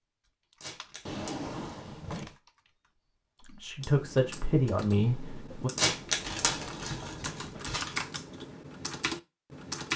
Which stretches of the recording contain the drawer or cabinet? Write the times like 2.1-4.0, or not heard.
1.1-2.4, 6.2-7.5.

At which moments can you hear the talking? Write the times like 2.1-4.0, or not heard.
3.5-5.7.